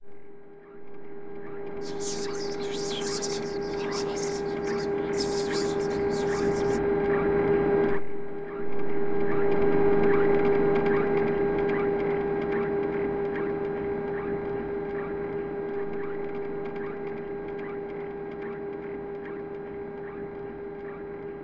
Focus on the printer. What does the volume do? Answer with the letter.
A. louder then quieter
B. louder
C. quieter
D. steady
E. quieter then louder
A.